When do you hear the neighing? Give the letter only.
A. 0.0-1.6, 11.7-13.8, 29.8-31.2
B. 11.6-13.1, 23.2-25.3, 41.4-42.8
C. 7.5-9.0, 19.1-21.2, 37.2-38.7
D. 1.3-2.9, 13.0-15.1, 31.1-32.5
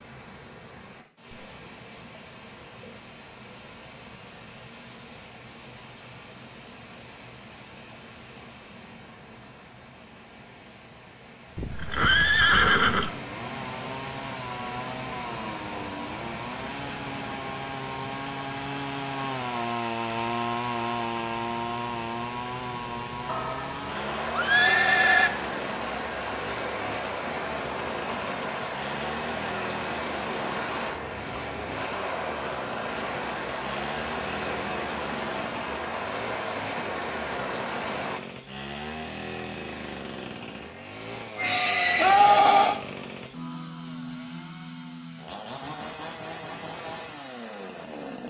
B.